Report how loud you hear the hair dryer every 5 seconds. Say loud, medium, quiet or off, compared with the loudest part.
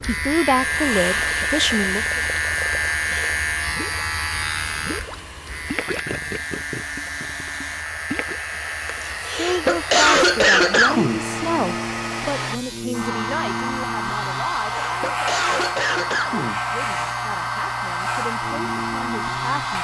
medium, medium, loud, loud.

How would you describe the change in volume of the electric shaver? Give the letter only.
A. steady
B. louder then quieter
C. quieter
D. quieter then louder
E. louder
C.